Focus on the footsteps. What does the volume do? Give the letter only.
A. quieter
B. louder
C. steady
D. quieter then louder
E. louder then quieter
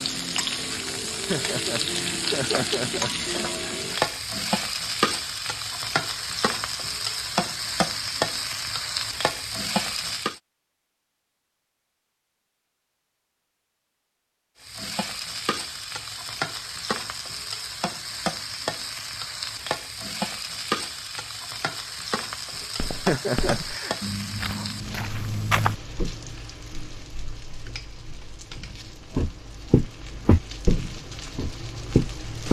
B.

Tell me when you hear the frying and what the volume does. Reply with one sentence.
You can hear the frying from 0.0 to 10.4 s, at a steady volume; and from 14.6 to 32.4 s, getting quieter.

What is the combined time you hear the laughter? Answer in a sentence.
You can hear the laughter for 4 seconds altogether.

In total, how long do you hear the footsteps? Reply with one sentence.
The footsteps can be heard for 7 seconds in total.